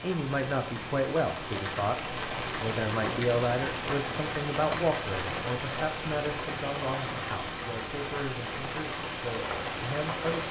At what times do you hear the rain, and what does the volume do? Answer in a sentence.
You can hear the rain from 0.0 to 10.4 s, at a steady volume.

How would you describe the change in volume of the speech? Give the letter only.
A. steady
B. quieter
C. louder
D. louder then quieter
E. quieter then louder
B.